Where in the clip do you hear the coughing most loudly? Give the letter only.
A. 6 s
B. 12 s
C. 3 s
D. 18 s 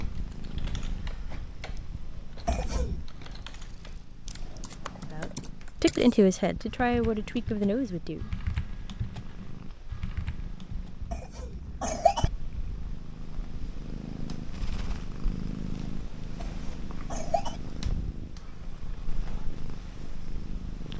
B.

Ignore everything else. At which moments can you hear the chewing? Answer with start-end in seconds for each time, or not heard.
not heard.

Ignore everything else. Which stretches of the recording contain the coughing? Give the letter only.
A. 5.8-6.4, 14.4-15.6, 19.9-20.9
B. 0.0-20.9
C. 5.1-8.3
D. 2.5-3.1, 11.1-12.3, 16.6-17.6
D.